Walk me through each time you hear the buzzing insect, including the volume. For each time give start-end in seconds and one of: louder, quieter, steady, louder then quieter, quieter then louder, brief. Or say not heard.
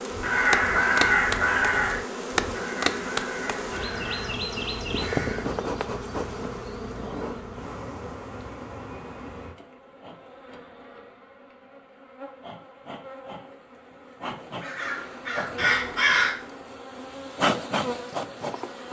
0.0-18.8 quieter then louder.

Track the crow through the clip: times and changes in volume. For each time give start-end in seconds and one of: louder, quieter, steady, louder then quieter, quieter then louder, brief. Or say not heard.
0.1-5.5 quieter
14.6-16.4 brief.